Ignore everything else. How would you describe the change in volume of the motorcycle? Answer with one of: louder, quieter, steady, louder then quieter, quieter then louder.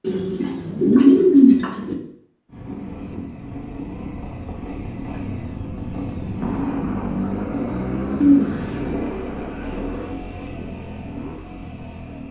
louder then quieter.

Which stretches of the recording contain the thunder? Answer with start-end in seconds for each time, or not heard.
6.4-10.1.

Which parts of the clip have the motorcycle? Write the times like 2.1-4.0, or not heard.
2.5-12.2.